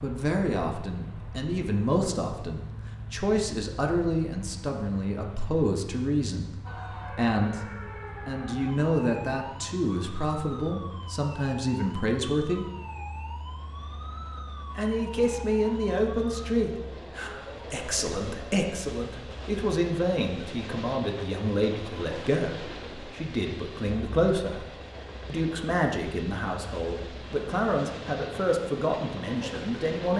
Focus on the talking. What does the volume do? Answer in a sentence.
The loudness of the talking stays about the same.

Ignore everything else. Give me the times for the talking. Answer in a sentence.
The talking can be heard from 0.0 to 12.7 s, from 14.8 to 24.6 s and from 25.2 to 30.1 s.